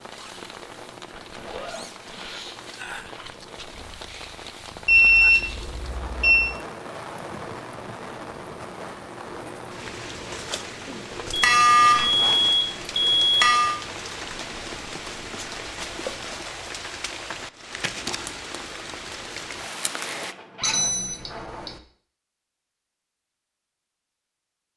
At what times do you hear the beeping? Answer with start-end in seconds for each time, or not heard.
4.8-6.5, 11.3-13.8, 20.6-21.8.